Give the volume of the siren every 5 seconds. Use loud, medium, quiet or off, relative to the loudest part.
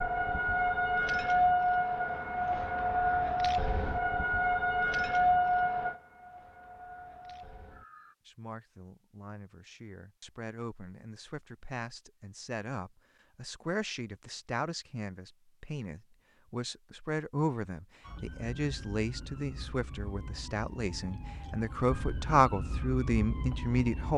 loud, loud, off, quiet, quiet.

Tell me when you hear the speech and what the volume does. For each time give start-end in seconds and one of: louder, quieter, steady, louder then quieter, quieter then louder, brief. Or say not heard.
8.2-24.1 louder.